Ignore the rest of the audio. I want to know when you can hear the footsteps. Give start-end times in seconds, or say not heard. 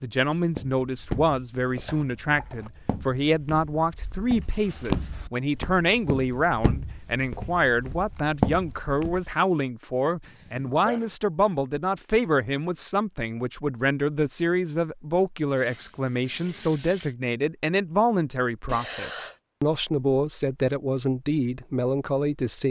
0.3-9.2.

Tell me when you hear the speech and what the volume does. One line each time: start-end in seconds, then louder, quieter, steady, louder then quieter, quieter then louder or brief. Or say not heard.
0.0-22.6 steady.